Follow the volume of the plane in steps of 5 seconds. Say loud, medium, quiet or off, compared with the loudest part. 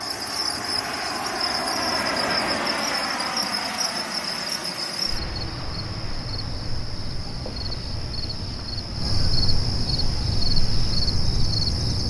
loud, quiet, quiet.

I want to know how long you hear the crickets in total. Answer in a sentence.
You can hear the crickets for 12 seconds altogether.